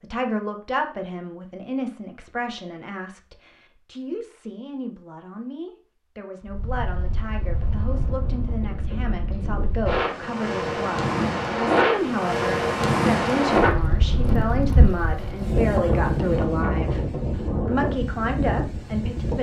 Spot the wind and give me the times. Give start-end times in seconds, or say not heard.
6.5-19.3.